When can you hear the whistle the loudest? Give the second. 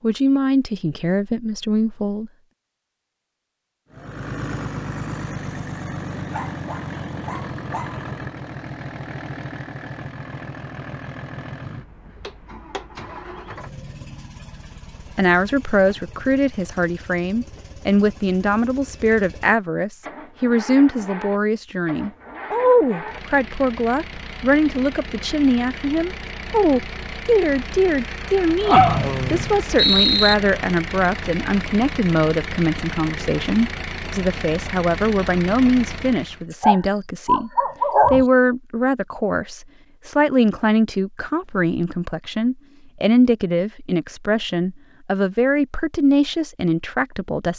30 s.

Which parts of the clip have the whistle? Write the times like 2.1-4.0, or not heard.
28.8-30.4.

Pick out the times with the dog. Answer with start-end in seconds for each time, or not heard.
6.3-8.1, 28.6-29.5, 36.5-38.2.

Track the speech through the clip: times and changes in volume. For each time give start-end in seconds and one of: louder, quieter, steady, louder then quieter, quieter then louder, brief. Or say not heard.
0.0-2.3 brief
15.2-47.5 steady.